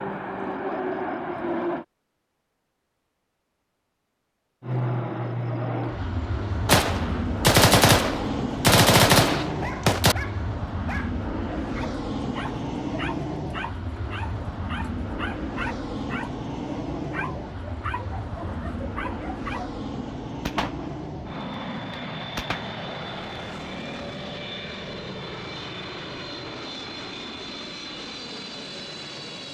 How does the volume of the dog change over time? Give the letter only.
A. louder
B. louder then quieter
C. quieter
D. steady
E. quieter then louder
D.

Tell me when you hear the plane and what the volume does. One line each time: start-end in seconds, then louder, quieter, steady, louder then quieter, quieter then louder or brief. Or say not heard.
0.0-1.9 brief
4.6-29.4 quieter.